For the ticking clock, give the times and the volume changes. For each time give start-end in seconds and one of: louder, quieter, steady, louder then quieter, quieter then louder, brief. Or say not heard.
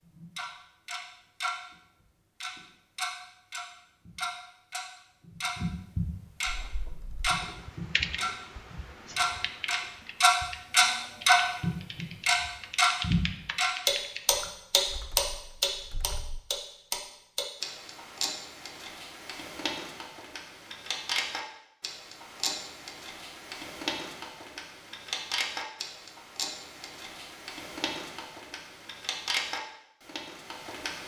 0.0-1.6 brief
2.4-31.0 louder then quieter.